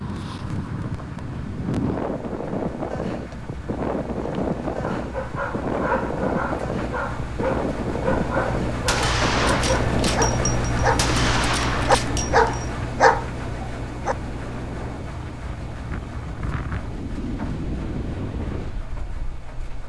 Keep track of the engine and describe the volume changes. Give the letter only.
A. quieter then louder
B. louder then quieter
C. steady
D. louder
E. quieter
B.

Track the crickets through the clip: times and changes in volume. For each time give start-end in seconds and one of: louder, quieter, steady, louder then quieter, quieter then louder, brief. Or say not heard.
not heard.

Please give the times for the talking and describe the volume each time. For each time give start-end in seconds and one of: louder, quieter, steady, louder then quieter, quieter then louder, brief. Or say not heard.
not heard.